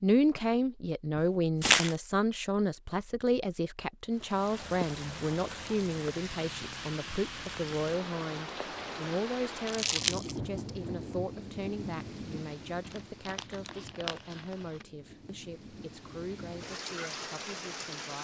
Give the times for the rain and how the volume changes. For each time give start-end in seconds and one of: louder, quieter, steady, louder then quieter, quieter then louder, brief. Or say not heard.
4.1-18.1 quieter then louder.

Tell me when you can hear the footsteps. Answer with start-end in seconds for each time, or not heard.
not heard.